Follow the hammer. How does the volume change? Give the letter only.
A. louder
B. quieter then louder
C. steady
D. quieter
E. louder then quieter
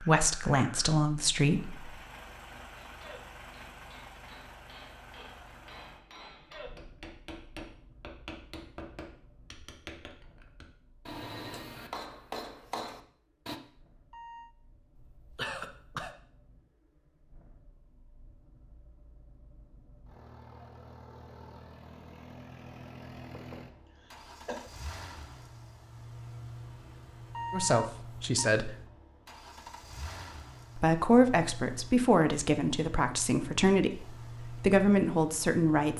A.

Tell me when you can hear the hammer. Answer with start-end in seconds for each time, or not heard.
2.8-13.6.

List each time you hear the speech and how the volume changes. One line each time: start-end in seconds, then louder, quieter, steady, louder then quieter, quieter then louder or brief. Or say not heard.
0.0-1.9 brief
27.5-28.8 brief
30.8-35.9 quieter then louder.